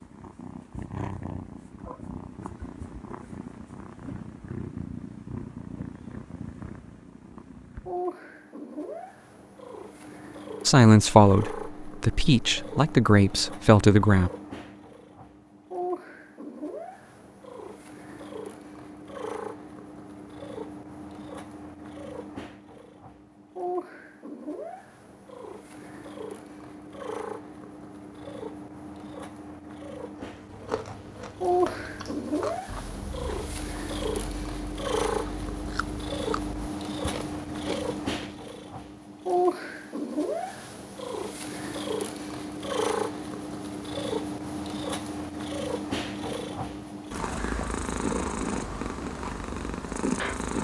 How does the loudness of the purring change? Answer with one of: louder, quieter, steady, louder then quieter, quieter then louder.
louder.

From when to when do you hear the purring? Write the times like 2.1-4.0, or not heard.
0.0-50.5.